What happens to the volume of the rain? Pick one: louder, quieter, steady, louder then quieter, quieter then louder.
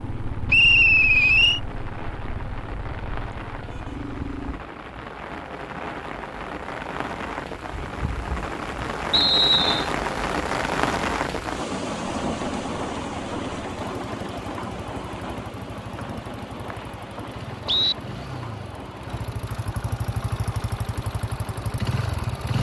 louder then quieter.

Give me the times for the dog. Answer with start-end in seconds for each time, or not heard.
not heard.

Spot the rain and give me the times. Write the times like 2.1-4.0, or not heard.
0.0-22.5.